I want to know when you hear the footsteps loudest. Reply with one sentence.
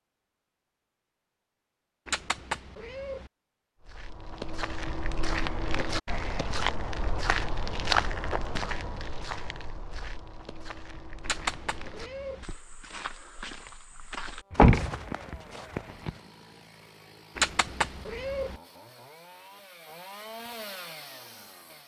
The loudest moment of the footsteps is at 8 seconds.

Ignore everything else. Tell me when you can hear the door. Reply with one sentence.
The door can be heard from 14.5 to 16.1 s.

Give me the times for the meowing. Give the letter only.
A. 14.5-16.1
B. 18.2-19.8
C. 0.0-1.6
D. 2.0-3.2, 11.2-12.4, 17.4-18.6
D.